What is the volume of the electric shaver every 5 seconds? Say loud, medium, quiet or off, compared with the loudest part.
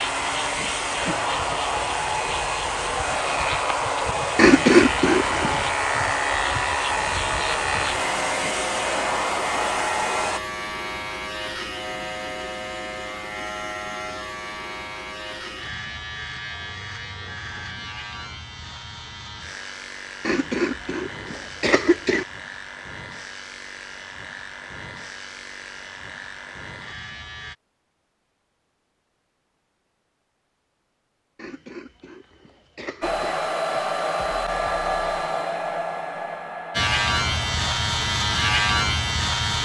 medium, medium, medium, quiet, quiet, quiet, off, loud.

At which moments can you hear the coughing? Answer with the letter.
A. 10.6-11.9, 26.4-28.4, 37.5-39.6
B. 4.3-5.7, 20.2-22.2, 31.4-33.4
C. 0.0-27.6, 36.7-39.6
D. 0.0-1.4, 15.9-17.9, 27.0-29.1
B.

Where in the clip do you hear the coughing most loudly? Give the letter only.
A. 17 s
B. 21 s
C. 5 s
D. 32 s
C.